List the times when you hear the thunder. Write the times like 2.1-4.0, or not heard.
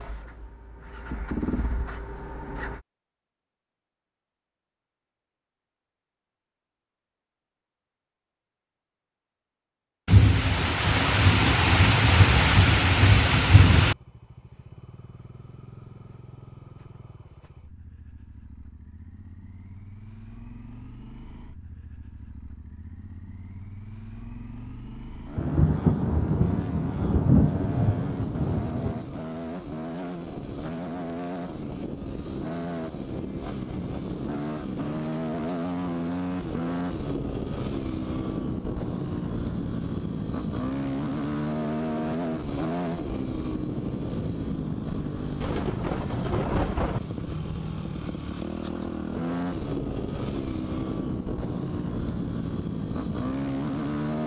10.1-13.9, 25.4-29.1, 45.4-47.0.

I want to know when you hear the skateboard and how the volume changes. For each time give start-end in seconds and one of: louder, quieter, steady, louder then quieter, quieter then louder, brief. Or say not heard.
not heard.